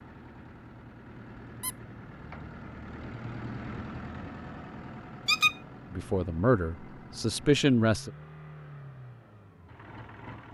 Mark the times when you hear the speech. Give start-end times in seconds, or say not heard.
5.9-8.1.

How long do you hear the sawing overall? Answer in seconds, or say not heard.
not heard.